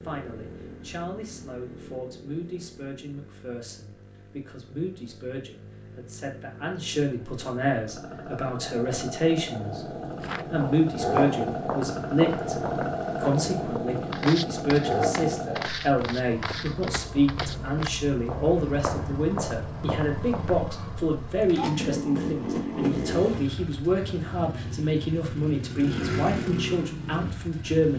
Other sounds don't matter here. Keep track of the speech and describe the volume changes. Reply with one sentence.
The volume of the speech goes up.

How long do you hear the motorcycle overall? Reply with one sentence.
The motorcycle can be heard for 28 seconds in total.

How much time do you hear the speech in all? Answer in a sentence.
The speech can be heard for 27 seconds in total.